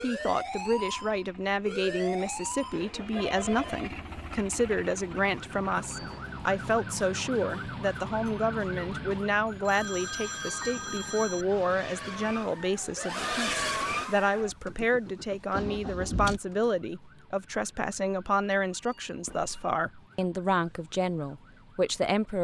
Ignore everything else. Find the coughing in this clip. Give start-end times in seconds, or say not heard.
not heard.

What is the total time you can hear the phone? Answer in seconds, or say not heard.
4 s.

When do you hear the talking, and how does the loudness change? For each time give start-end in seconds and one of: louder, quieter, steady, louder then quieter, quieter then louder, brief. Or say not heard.
0.0-22.3 steady.